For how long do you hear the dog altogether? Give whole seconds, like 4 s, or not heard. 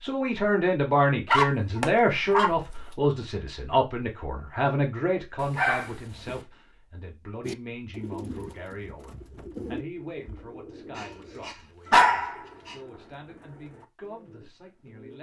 4 s.